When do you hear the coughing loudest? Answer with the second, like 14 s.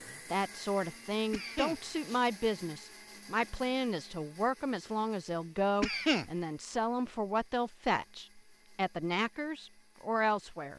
6 s.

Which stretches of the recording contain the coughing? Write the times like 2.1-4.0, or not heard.
1.3-2.2, 5.8-6.2.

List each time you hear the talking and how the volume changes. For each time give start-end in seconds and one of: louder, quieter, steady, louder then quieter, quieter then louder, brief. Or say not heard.
0.2-10.7 steady.